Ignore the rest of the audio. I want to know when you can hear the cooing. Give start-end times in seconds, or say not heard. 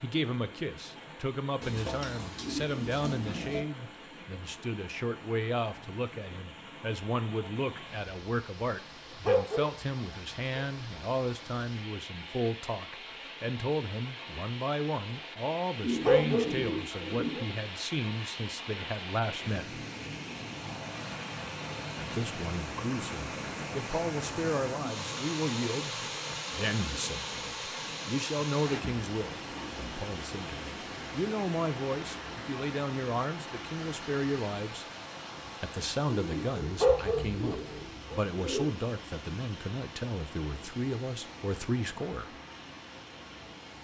1.6-3.6, 15.8-17.4, 36.1-38.7.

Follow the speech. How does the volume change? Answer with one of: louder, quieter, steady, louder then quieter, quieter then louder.
steady.